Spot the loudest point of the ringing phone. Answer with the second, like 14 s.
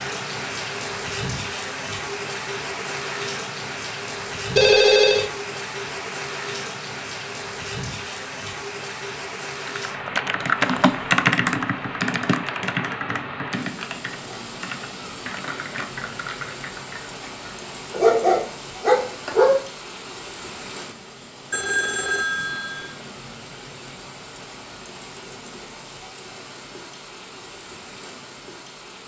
5 s.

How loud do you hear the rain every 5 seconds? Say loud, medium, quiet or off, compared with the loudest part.
loud, loud, loud, medium, medium, medium.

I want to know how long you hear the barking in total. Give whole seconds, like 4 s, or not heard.
2 s.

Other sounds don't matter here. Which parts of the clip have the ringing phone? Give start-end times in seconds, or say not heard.
4.5-5.3, 21.5-22.9.